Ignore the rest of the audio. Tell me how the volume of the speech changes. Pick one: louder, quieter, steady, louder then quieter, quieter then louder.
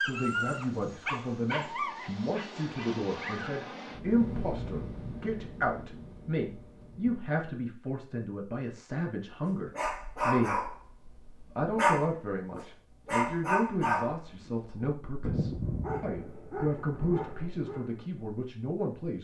steady.